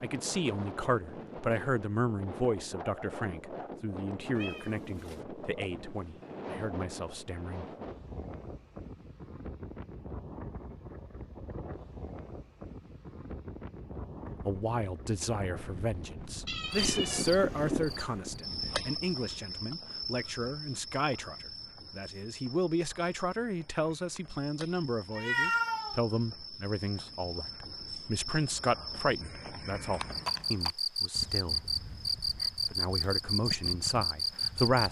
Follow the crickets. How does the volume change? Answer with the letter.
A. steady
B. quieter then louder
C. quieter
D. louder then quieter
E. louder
B.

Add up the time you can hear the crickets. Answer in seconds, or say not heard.
18 s.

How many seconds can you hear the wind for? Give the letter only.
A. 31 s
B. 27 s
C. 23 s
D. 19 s
D.